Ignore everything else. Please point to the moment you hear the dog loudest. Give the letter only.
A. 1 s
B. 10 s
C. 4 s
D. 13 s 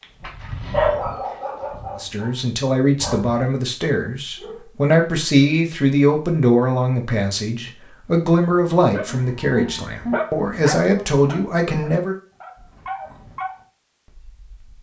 A.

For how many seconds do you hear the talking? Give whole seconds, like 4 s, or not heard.
10 s.